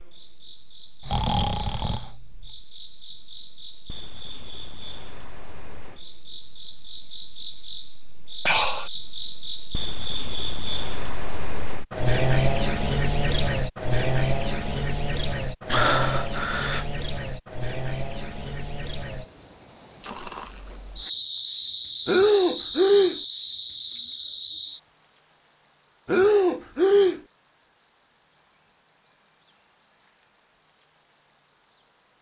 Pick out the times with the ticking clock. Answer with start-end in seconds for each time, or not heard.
not heard.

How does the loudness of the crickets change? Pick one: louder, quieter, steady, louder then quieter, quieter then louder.
louder then quieter.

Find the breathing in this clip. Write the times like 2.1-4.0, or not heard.
1.1-2.5, 8.4-8.9, 15.7-16.9, 22.1-23.2, 26.1-27.2.